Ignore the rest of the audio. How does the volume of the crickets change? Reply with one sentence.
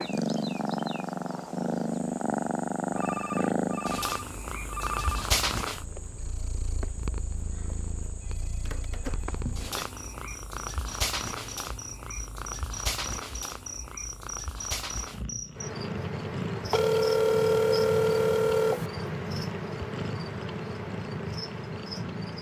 The loudness of the crickets goes up.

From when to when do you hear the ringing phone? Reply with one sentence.
You can hear the ringing phone from 2.9 to 5.3 s, from 8.2 to 9.8 s and from 16.7 to 18.9 s.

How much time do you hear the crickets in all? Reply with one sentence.
The crickets can be heard for 22 seconds in total.